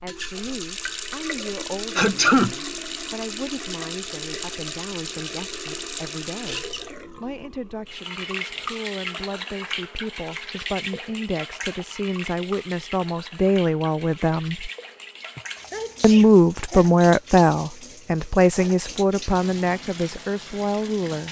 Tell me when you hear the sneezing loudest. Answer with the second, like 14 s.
2 s.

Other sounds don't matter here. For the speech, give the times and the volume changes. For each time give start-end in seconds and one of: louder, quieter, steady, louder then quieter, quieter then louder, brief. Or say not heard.
0.0-14.7 louder
16.0-21.2 quieter.